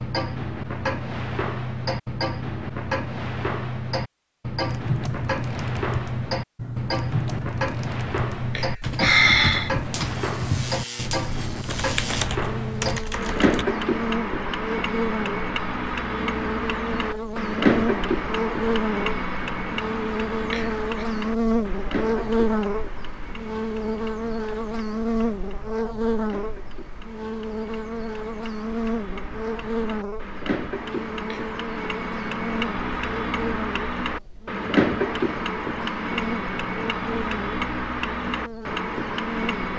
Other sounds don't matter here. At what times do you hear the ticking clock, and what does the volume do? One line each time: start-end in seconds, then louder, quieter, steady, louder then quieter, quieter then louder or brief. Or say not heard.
0.0-39.7 quieter then louder.